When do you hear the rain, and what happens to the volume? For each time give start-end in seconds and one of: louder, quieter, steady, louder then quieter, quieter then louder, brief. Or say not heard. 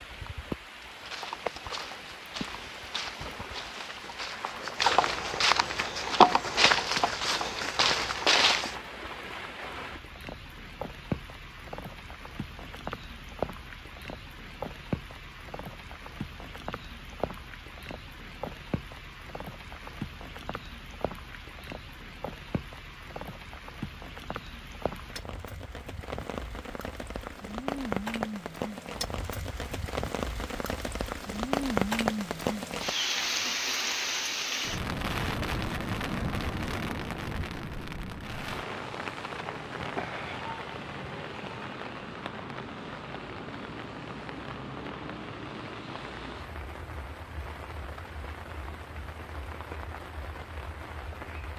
0.0-51.5 louder then quieter.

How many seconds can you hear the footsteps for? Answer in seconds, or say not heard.
8 s.